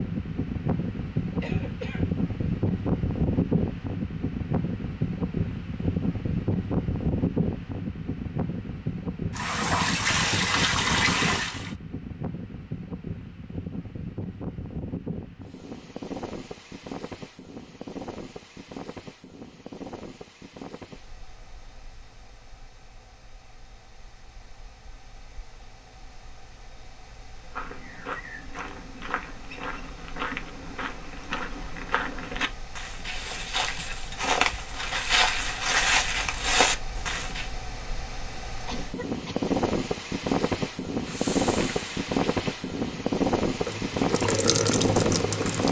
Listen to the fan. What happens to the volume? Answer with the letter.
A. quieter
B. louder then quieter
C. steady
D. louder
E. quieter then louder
E.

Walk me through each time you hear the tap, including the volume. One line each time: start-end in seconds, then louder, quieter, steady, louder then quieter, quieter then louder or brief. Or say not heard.
9.3-11.8 brief
41.0-45.6 quieter then louder.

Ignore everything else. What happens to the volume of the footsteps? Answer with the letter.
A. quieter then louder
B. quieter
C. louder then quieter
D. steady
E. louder
E.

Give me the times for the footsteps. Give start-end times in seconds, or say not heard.
27.5-37.5.